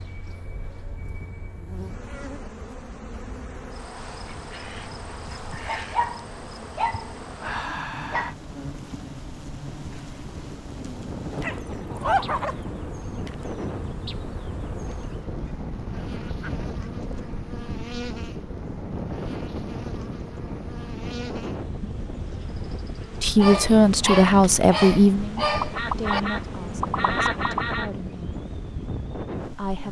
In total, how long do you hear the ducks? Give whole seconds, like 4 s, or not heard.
7 s.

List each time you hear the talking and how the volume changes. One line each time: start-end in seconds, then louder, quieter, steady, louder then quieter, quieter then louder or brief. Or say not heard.
23.2-28.3 quieter
29.4-29.8 brief.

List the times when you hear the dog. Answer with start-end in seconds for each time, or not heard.
5.5-8.3, 11.3-12.6, 23.4-26.2.